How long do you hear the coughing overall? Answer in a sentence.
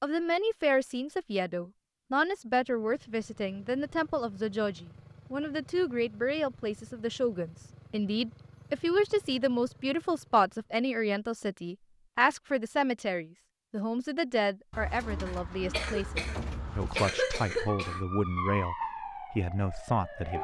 The coughing can be heard for 3 seconds in total.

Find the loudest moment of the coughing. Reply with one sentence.
The volume of the coughing peaks at 17 seconds.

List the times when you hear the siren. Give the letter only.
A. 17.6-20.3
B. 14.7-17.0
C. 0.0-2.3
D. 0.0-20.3
A.